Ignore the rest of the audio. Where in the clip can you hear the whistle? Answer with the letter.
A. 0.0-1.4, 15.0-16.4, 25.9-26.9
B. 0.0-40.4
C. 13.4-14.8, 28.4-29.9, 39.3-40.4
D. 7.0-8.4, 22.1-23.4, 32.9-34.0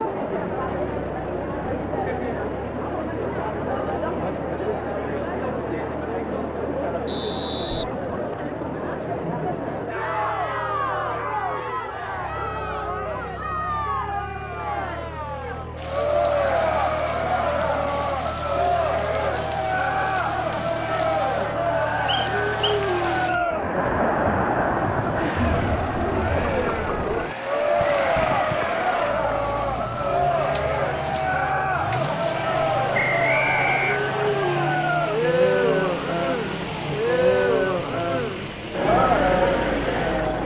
D.